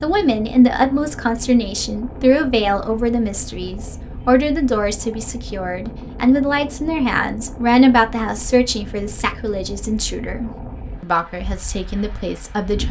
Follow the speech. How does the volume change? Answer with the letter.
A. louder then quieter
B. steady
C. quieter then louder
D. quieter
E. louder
D.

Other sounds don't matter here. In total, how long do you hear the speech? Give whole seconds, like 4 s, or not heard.
13 s.